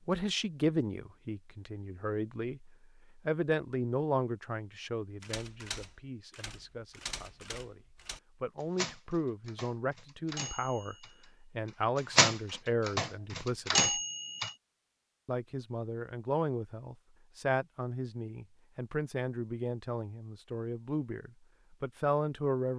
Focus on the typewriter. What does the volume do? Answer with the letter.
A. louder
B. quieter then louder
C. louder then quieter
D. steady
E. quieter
A.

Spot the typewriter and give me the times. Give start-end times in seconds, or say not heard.
5.2-14.6.